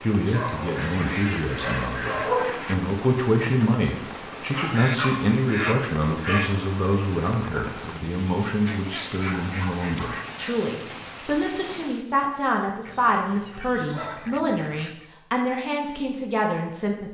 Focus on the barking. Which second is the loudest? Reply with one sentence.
The volume of the barking peaks at 2 seconds.